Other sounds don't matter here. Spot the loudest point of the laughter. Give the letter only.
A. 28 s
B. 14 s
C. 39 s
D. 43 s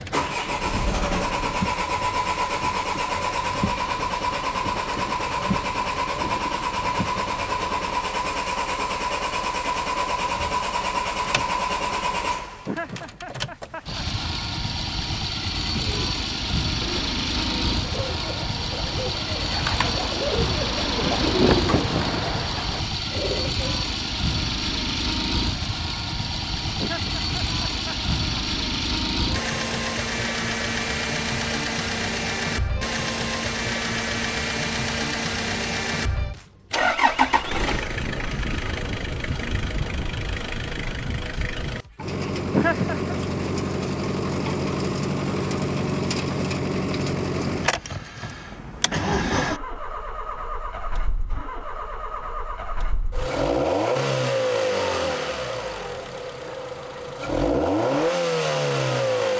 D.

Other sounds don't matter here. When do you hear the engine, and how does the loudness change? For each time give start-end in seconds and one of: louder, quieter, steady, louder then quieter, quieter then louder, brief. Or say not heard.
0.0-59.3 steady.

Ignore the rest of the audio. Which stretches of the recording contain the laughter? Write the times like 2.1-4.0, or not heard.
12.7-14.1, 26.8-28.1, 42.5-43.1.